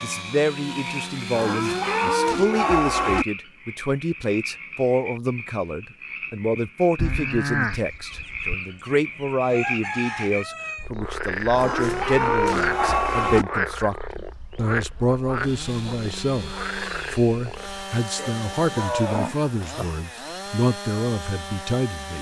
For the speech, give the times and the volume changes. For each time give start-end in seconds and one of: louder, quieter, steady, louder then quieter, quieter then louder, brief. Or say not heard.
0.0-22.1 steady.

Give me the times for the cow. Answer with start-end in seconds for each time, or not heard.
1.3-3.2, 7.0-8.6, 11.5-13.4, 18.1-19.9.